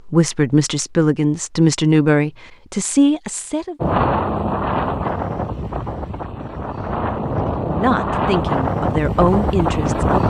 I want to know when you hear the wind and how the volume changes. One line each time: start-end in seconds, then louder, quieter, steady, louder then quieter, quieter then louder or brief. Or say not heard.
3.8-10.2 quieter then louder.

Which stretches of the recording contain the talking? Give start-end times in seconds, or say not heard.
0.1-3.8, 7.7-10.2.